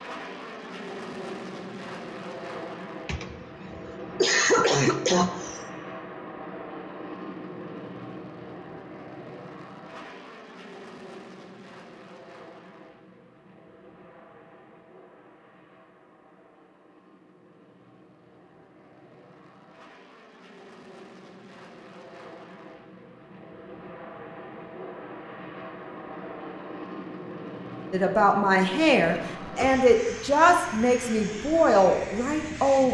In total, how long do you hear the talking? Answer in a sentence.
The talking can be heard for 5 seconds in total.